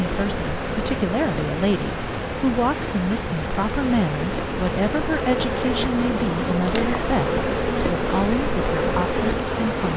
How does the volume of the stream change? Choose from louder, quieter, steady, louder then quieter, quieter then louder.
steady.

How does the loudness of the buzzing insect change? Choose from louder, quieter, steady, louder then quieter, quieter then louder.
louder.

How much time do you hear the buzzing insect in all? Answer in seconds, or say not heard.
10 s.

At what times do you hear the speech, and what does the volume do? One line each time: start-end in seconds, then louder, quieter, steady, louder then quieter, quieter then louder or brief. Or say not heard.
0.0-9.9 steady.